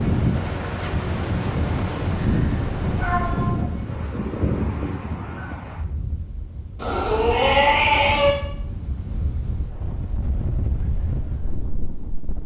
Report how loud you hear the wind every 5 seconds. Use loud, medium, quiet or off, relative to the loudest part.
loud, medium, medium.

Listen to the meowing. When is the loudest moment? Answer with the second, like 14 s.
8 s.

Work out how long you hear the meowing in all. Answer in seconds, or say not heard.
3 s.